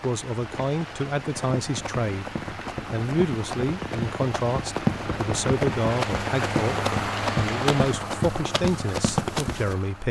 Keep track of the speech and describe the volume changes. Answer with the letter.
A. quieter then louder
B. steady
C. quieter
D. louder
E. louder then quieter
B.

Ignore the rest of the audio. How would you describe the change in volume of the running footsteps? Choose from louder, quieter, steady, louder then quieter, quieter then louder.
louder.